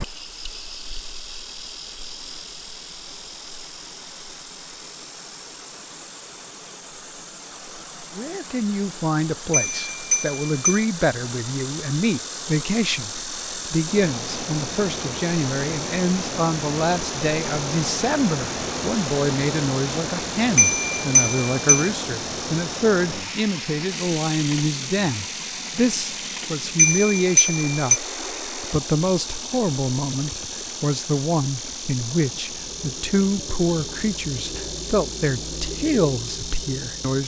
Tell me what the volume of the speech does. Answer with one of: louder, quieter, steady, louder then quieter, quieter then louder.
steady.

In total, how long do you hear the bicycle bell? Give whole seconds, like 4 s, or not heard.
4 s.